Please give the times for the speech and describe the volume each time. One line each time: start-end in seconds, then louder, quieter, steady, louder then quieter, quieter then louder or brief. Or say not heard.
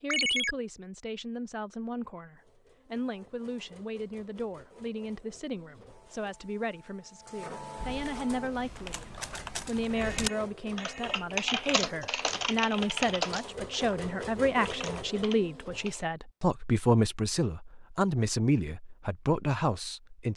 0.0-20.3 louder.